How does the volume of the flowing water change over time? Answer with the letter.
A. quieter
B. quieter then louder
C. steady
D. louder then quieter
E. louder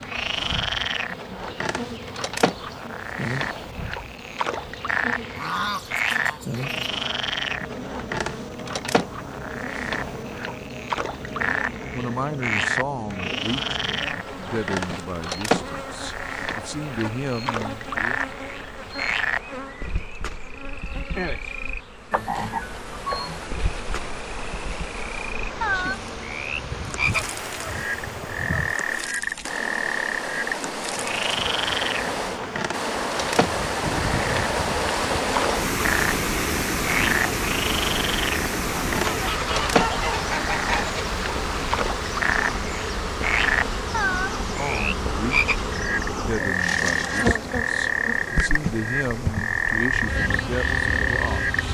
D.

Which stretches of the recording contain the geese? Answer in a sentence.
You can hear the geese from 5.3 to 6.8 s, from 26.6 to 28.8 s and from 39.0 to 41.0 s.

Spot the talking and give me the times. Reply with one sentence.
The talking can be heard from 11.2 to 18.2 s and from 44.5 to 51.6 s.